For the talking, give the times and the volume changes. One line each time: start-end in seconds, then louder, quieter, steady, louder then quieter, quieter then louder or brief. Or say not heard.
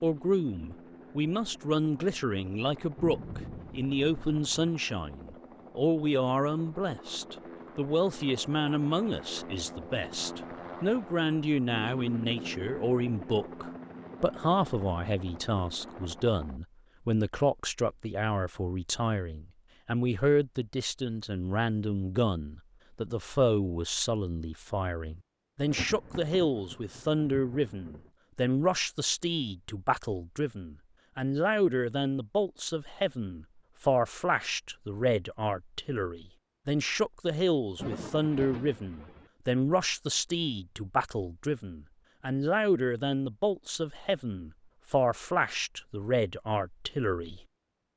0.0-47.9 steady.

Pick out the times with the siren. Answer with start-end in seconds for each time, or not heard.
not heard.